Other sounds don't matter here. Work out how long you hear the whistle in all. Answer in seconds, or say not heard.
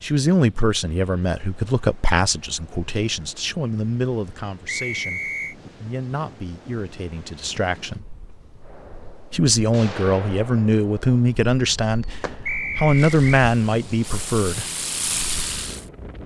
2 s.